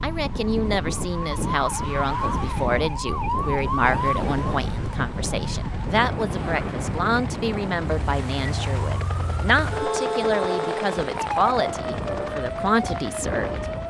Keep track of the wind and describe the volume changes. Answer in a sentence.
The loudness of the wind goes down, then up.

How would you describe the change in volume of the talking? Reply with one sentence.
The volume of the talking stays about the same.